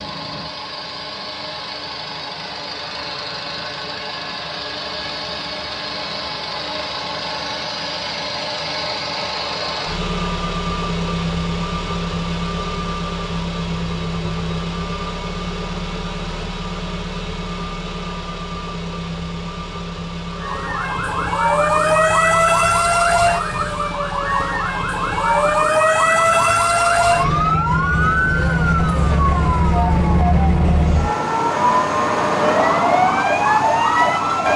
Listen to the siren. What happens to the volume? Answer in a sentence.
The volume of the siren stays about the same.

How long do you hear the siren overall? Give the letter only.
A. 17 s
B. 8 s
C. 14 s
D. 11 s
C.